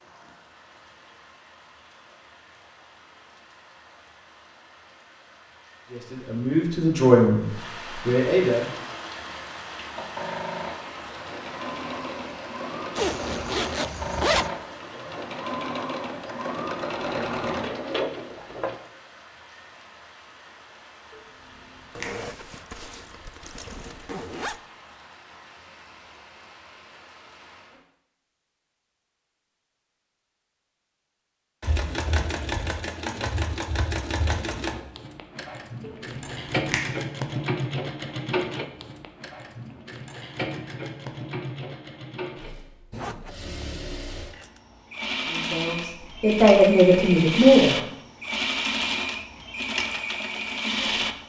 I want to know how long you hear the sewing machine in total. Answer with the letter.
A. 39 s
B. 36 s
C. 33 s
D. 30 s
D.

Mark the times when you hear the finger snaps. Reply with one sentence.
You can hear the finger snaps from 21.1 to 22.2 s and from 35.8 to 37.0 s.